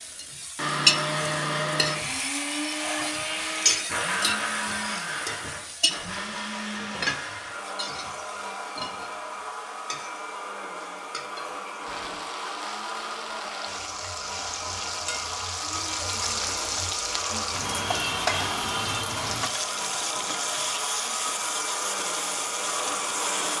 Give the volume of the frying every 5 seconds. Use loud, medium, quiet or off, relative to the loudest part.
loud, medium, medium, loud, loud.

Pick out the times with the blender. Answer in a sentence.
You can hear the blender from 0.1 to 23.5 s.